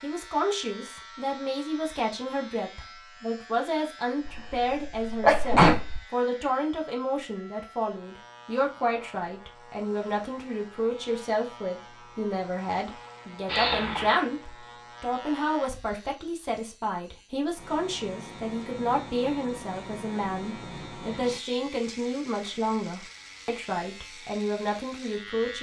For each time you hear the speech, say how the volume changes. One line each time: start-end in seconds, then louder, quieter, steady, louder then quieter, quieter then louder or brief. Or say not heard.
0.0-25.5 steady.